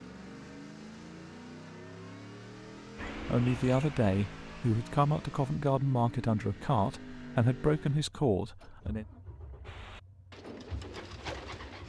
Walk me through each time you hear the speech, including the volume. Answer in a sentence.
The speech can be heard from 3.2 to 9.1 s, at a steady volume.